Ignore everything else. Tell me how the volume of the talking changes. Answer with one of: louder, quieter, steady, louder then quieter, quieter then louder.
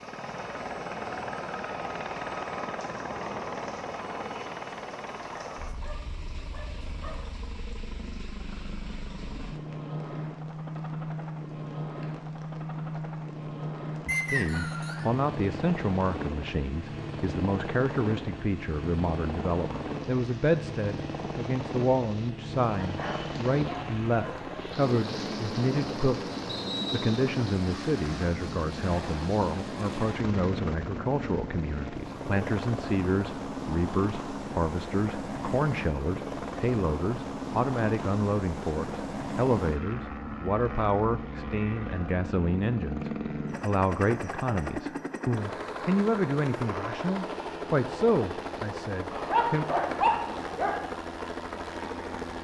steady.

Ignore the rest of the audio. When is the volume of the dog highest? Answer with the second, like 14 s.
50 s.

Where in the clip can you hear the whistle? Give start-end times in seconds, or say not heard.
14.1-15.1, 26.4-27.1.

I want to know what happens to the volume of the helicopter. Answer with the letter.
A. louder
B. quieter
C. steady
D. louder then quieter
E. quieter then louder
C.